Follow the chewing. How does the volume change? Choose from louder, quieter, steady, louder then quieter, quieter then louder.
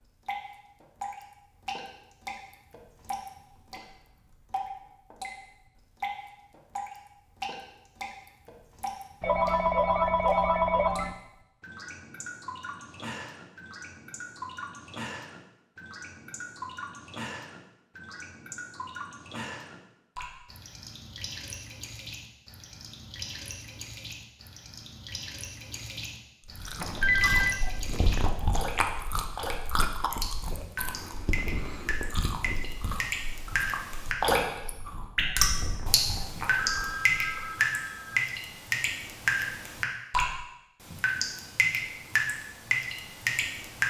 quieter.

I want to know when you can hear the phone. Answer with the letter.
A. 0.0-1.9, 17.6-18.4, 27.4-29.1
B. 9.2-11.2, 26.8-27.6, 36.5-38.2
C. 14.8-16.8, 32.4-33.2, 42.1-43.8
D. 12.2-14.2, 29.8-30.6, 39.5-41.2
B.